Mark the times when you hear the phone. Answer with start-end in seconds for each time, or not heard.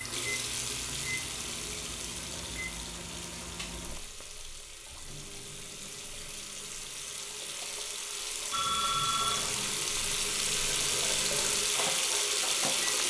8.5-9.8.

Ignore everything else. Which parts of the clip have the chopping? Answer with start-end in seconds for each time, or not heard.
not heard.